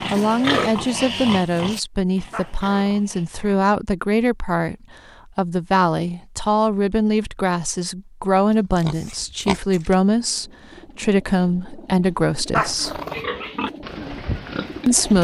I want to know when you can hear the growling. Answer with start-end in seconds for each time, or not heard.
2.3-3.6, 12.5-13.2.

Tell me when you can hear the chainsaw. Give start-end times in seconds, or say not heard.
not heard.